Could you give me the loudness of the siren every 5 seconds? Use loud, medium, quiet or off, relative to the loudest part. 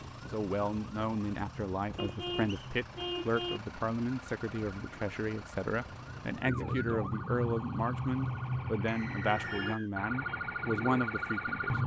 quiet, loud, loud.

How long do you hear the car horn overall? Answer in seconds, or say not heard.
3 s.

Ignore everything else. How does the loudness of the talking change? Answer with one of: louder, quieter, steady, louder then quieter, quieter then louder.
steady.